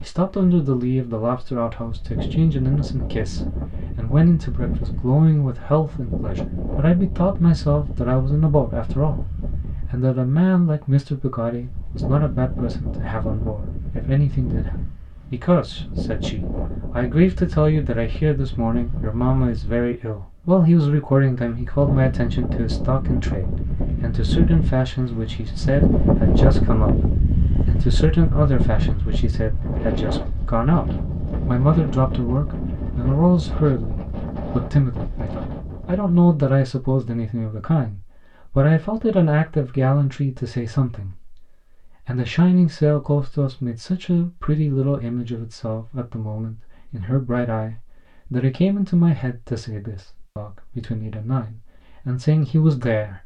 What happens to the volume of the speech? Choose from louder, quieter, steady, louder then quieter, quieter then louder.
steady.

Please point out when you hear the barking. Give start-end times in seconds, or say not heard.
not heard.